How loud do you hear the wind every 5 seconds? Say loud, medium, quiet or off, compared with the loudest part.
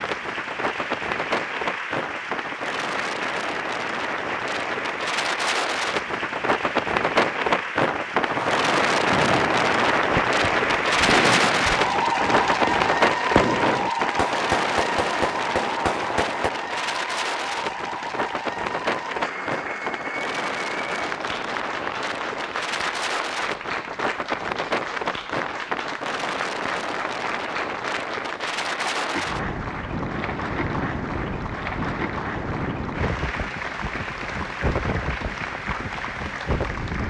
medium, loud, loud, medium, medium, medium, medium, medium.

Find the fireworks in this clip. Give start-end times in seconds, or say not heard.
8.2-16.5.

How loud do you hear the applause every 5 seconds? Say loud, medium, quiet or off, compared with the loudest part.
medium, medium, loud, medium, medium, medium, medium, medium.